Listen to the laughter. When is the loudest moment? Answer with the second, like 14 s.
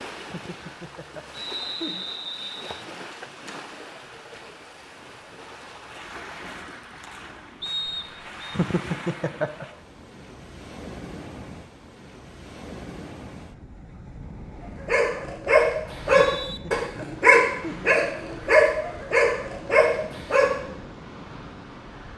9 s.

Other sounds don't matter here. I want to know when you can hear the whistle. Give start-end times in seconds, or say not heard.
1.3-2.9, 7.6-8.6, 15.8-16.6.